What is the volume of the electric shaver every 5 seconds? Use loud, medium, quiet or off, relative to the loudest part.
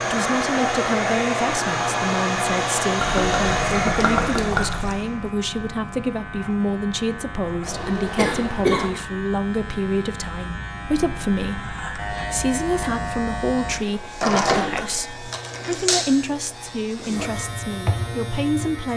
medium, medium, loud, loud.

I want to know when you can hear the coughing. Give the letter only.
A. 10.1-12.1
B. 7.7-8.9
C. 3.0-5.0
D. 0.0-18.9
B.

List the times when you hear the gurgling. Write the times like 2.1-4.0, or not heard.
3.0-5.0.